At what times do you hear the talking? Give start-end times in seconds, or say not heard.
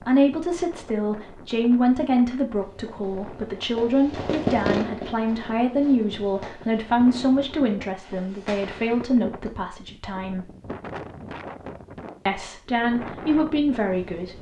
0.0-10.5, 12.2-14.3.